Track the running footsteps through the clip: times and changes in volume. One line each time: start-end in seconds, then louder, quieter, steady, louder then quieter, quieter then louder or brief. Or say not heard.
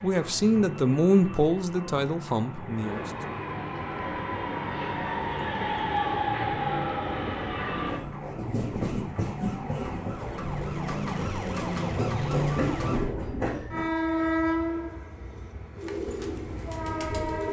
not heard.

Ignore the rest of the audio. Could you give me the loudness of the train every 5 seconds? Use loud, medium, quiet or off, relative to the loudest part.
medium, loud, loud, medium.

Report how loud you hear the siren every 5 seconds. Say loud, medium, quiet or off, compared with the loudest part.
medium, medium, loud, off.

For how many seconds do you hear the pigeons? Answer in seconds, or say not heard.
2 s.